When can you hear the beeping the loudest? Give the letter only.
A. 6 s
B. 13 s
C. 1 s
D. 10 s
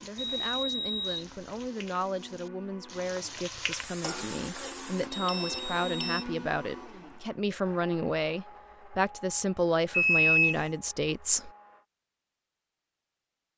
D.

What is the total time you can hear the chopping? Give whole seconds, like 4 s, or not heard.
not heard.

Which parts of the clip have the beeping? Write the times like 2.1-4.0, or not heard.
0.1-1.6, 5.1-6.2, 9.9-10.7.